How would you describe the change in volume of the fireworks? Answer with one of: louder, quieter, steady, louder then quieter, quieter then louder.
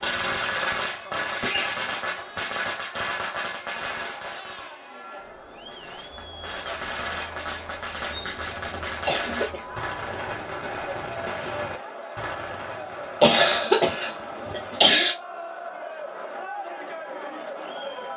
quieter.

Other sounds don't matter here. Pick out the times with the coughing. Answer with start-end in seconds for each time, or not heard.
1.2-2.0, 8.1-9.7, 13.2-15.2.